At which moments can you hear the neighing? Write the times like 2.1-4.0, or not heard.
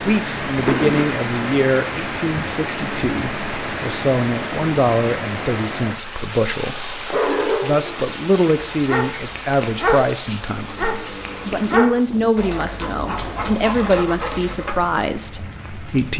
0.5-1.2.